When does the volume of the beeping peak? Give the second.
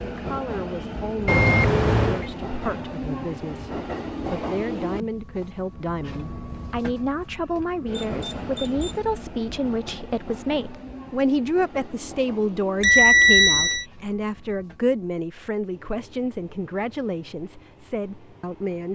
13 s.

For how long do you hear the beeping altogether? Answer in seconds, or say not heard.
3 s.